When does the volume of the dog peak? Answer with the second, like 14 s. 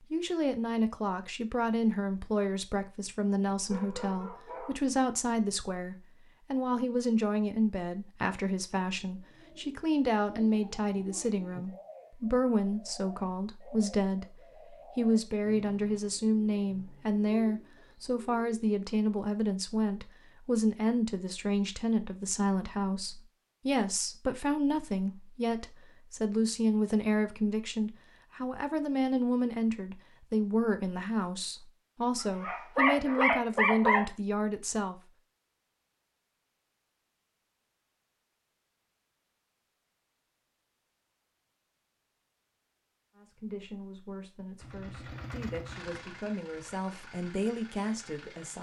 34 s.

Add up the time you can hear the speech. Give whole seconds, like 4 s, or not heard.
40 s.